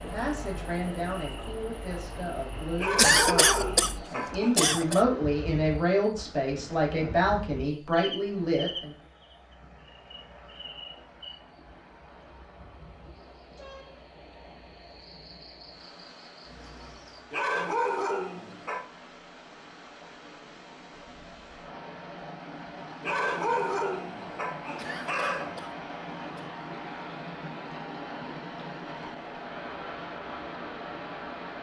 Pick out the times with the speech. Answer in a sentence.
You can hear the speech from 0.0 to 8.9 s.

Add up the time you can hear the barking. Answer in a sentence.
The barking can be heard for 6 seconds in total.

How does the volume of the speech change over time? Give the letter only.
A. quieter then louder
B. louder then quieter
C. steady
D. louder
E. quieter
D.